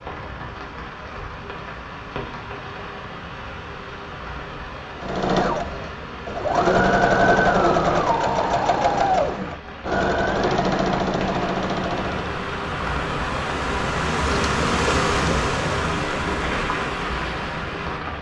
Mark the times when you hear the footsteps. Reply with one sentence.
The footsteps can't be heard in this clip.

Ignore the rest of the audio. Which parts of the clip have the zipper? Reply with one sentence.
You can't hear the zipper here.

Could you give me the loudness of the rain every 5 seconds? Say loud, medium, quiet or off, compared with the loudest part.
medium, medium, loud, loud.